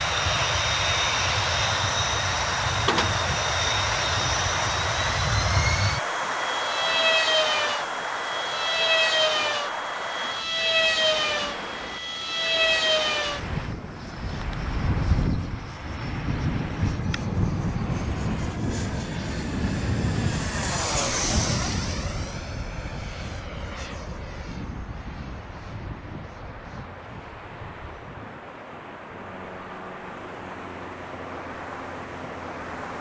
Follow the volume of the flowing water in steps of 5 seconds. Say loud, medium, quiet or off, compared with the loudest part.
loud, loud, medium, quiet, quiet, quiet, medium.